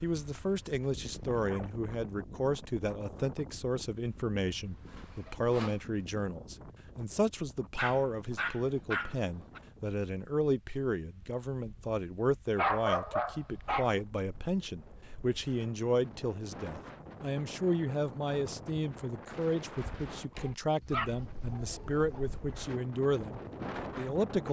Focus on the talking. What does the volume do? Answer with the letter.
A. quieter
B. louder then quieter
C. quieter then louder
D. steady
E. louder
D.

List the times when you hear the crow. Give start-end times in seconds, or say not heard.
not heard.